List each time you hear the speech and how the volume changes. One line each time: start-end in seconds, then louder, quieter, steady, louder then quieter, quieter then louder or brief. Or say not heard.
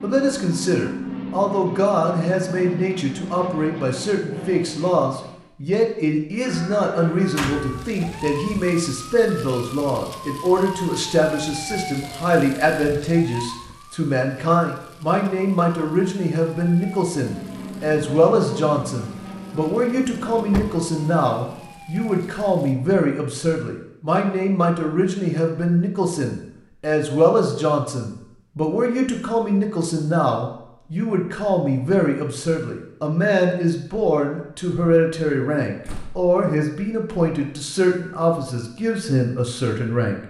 0.0-40.2 steady.